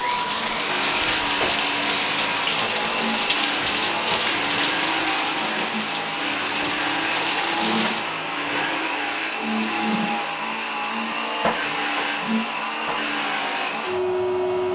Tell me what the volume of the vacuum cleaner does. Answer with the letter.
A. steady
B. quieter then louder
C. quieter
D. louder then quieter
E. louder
A.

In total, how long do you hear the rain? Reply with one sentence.
The rain can be heard for 8 seconds in total.